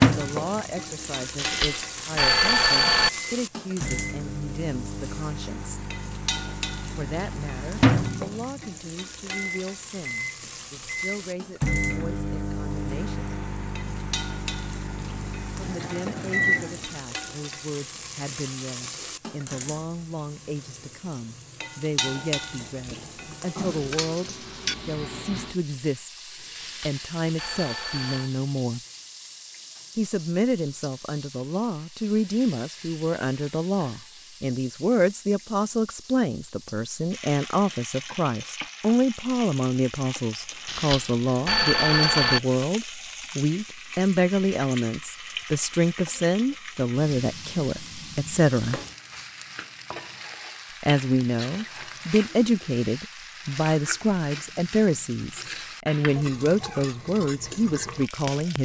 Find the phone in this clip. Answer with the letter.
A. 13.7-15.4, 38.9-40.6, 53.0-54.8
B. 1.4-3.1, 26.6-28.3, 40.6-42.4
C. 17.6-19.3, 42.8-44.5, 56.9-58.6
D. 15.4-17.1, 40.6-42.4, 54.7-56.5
B.